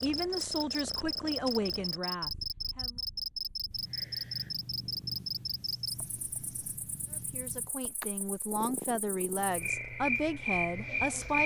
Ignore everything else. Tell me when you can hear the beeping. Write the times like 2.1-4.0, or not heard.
not heard.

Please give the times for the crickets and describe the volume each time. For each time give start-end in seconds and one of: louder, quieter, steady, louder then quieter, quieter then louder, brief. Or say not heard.
0.0-11.4 quieter then louder.